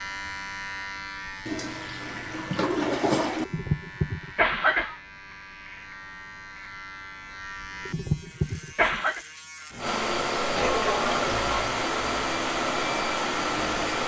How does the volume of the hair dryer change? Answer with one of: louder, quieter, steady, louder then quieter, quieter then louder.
steady.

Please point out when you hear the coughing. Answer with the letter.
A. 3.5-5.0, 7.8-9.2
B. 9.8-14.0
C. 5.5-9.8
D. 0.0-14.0
A.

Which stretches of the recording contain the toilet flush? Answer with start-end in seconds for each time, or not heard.
1.4-3.5, 10.6-11.5.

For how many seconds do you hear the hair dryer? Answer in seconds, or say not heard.
4 s.